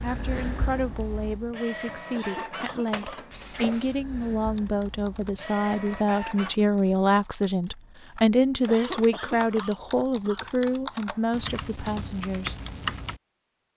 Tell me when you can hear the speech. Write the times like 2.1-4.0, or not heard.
0.0-12.6.